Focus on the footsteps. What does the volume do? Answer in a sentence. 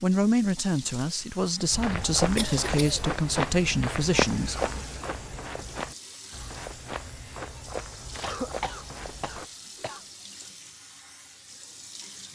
The volume of the footsteps goes down.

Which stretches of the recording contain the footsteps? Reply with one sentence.
The footsteps can be heard from 1.7 to 9.5 s.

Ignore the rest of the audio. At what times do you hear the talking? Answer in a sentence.
You can hear the talking from 0.0 to 4.7 s.